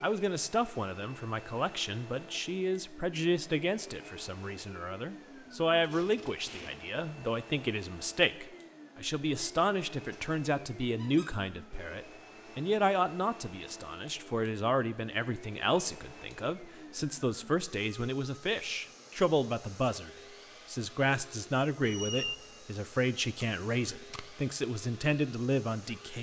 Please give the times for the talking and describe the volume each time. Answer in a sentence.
The talking can be heard from 0.0 to 26.1 s, at a steady volume.